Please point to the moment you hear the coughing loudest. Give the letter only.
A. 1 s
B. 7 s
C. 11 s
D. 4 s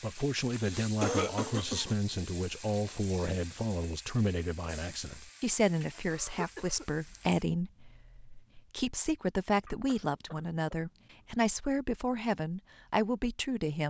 A.